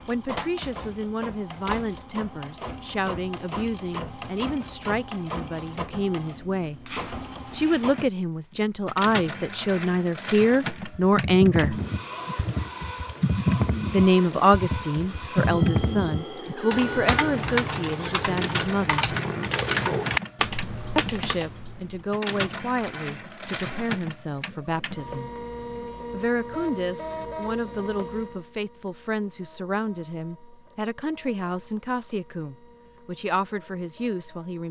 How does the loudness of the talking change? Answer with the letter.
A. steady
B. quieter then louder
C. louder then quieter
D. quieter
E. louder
C.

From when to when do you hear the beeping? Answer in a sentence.
The beeping can't be heard in this clip.